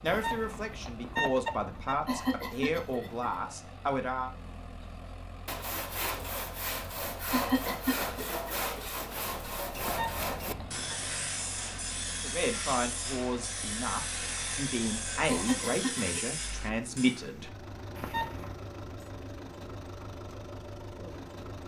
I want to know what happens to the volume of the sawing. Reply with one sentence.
The volume of the sawing stays about the same.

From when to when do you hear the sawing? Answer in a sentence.
The sawing can be heard from 5.5 to 17.2 s.